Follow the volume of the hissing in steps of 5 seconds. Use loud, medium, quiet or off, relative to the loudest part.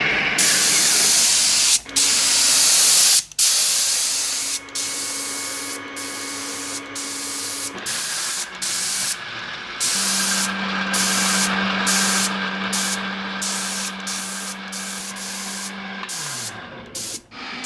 loud, medium, medium, quiet.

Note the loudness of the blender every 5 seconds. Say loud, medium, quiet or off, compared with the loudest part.
loud, medium, loud, medium.